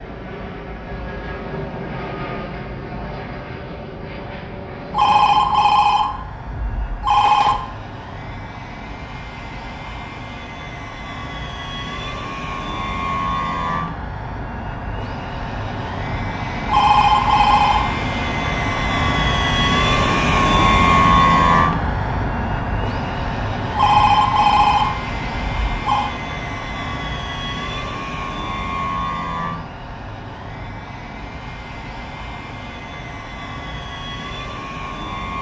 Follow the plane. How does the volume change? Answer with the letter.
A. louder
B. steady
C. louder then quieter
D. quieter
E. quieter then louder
C.